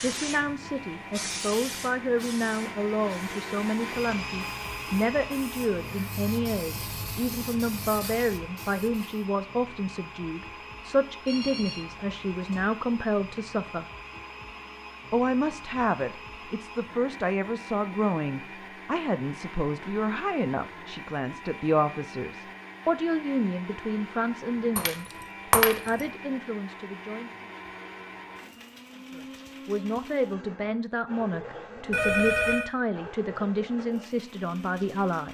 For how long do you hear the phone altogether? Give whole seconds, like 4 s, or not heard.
2 s.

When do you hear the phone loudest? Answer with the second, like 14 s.
32 s.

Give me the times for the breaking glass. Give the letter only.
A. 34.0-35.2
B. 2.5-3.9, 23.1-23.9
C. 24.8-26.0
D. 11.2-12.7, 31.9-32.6
C.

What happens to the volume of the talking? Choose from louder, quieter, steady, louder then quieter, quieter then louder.
steady.